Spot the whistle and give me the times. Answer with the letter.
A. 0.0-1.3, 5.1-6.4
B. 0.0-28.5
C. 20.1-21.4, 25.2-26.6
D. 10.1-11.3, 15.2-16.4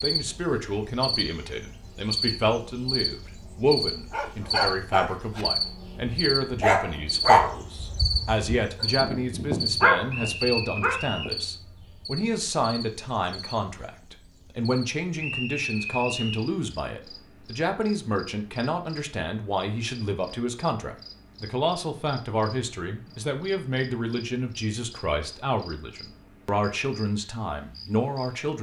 D.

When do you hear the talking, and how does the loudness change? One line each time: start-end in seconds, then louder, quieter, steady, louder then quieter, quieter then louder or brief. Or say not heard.
0.0-28.5 steady.